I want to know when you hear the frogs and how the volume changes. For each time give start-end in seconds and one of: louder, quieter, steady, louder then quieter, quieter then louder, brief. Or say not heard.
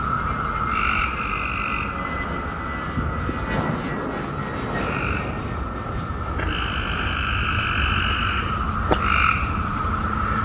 0.0-10.4 quieter then louder.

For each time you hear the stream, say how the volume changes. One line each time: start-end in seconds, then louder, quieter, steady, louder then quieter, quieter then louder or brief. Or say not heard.
not heard.